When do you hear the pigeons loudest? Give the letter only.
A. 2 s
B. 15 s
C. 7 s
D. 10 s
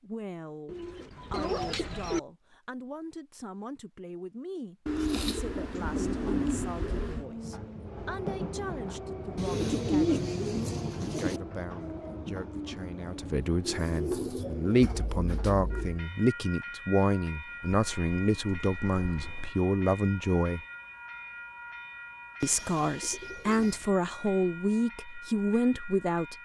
D.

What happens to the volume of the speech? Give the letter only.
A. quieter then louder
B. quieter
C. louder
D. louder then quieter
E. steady
C.